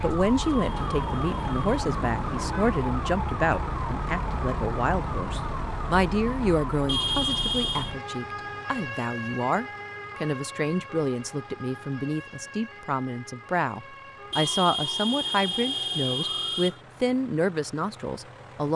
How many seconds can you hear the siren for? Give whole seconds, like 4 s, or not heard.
17 s.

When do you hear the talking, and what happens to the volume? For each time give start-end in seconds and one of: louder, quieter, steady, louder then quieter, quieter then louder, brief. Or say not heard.
0.0-18.7 steady.